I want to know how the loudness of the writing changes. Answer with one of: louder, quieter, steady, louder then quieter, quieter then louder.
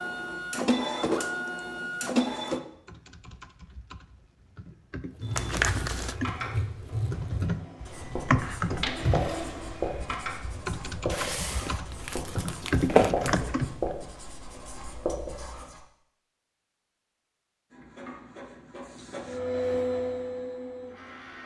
steady.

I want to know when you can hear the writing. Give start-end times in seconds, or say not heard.
5.1-15.8.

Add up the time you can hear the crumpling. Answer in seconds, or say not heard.
3 s.